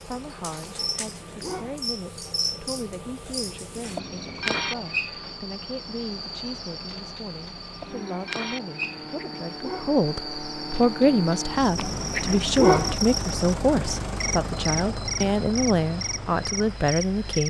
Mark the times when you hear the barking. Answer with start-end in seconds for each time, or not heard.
0.6-1.8, 8.8-10.0, 11.8-12.9.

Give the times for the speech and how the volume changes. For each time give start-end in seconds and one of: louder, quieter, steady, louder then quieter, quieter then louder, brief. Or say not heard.
0.0-17.4 louder.